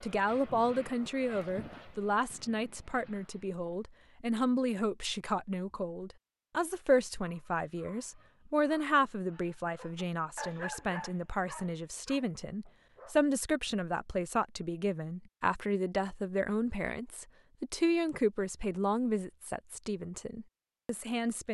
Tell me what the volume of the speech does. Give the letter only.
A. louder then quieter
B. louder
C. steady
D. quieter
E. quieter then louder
C.